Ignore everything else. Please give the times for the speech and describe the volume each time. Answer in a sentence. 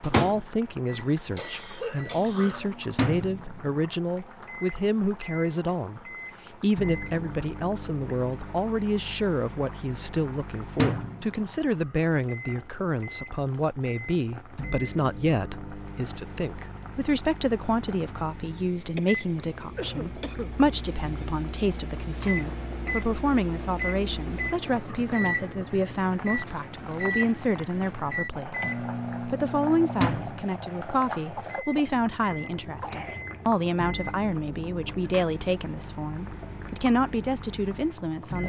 You can hear the speech from 0.0 to 6.0 s, at a steady volume; and from 6.6 to 38.4 s, at a steady volume.